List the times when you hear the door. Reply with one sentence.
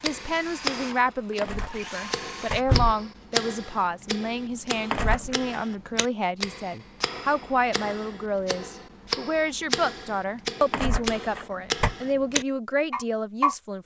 The door can be heard from 1.4 to 3.0 s, from 4.9 to 5.5 s and from 10.7 to 11.9 s.